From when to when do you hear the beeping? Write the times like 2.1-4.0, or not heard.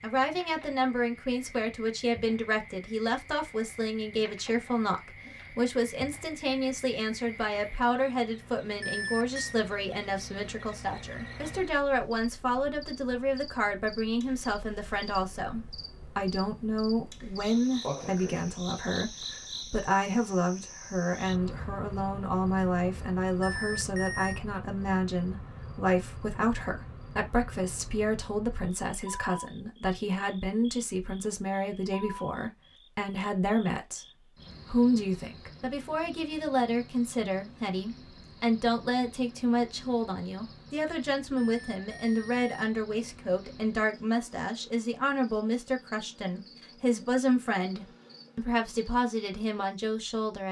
8.8-9.6, 23.4-24.4, 41.4-42.5.